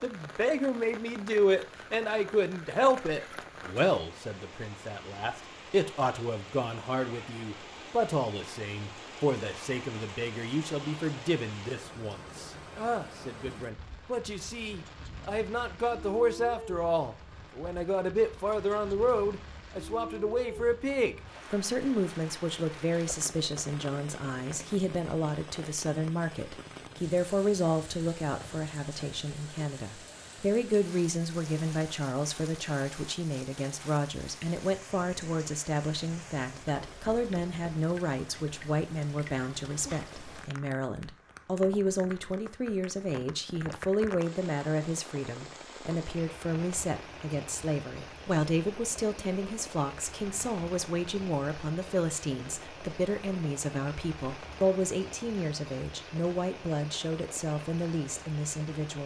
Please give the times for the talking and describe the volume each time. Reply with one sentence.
You can hear the talking from 0.0 to 59.0 s, at a steady volume.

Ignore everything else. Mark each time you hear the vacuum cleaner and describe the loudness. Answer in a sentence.
The vacuum cleaner can't be heard in this clip.